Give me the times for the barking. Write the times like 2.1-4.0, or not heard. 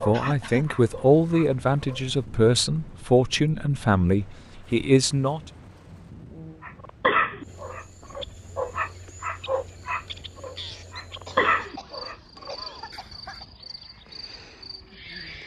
0.0-2.0, 6.6-13.0.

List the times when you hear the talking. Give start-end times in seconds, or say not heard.
0.1-5.4.